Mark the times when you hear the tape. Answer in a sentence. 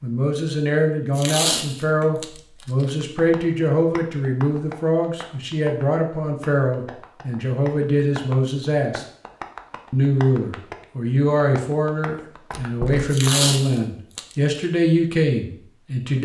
You can hear the tape from 1.1 to 2.9 s and from 13.1 to 14.6 s.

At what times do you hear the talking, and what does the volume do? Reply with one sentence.
You can hear the talking from 0.0 to 9.1 s, at a steady volume; and from 9.9 to 16.2 s, at a steady volume.